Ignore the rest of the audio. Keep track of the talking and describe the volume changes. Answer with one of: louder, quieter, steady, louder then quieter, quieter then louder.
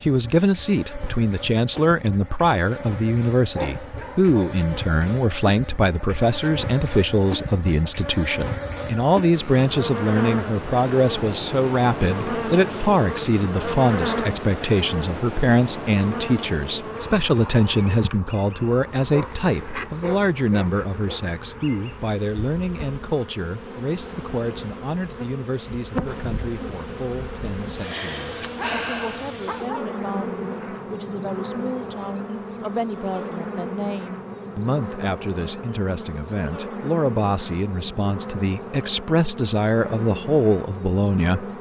quieter then louder.